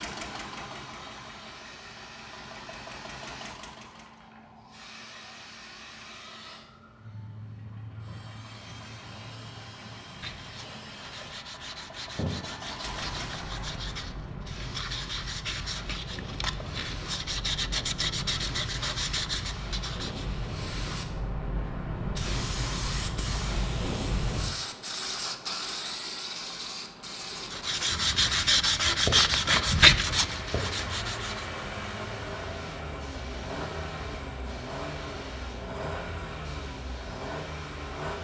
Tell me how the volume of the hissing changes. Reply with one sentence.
The volume of the hissing goes up, then down.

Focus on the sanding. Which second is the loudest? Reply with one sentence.
The loudest moment of the sanding is at 30 seconds.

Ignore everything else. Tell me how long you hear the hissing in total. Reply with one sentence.
You can hear the hissing for 38 seconds altogether.